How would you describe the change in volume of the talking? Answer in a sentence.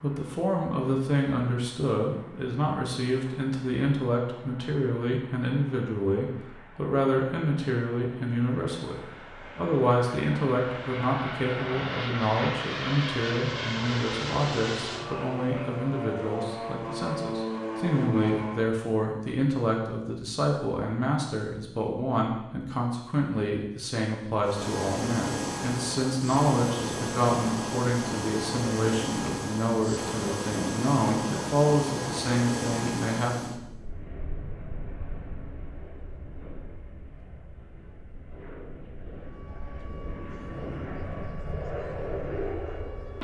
The loudness of the talking stays about the same.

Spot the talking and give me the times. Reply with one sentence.
You can hear the talking from 0.0 to 33.8 s.